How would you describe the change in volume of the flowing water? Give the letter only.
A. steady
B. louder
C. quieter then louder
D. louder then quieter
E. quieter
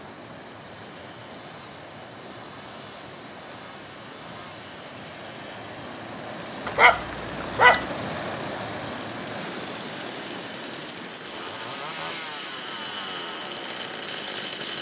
D.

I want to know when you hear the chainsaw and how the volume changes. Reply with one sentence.
The chainsaw can be heard from 0.2 to 14.7 s, getting louder.